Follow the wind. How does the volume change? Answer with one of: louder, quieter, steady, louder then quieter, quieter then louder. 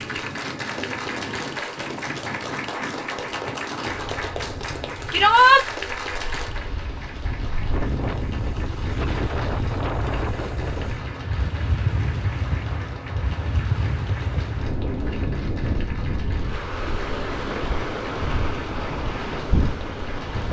louder.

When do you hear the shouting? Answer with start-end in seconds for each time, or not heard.
5.1-5.7.